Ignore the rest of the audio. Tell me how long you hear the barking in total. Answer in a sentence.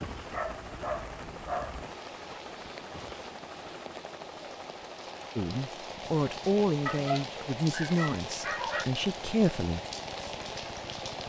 You can hear the barking for 4 seconds altogether.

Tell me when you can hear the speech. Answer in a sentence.
The speech can be heard from 5.3 to 9.8 s.